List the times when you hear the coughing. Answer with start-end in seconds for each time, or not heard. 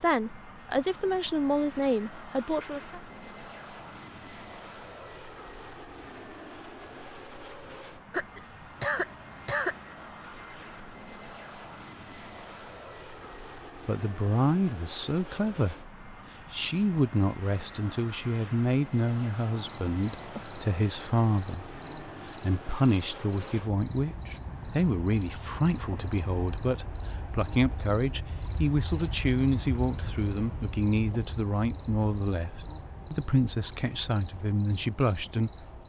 8.1-9.8.